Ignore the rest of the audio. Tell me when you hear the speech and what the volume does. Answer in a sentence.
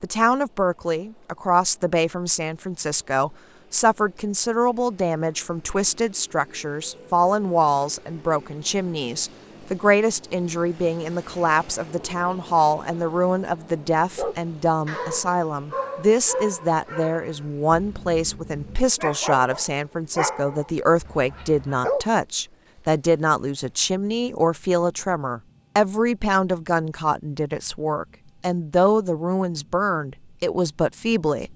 You can hear the speech from 0.0 to 31.5 s, at a steady volume.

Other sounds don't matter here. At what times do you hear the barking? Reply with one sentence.
The barking can be heard from 14.2 to 22.1 s.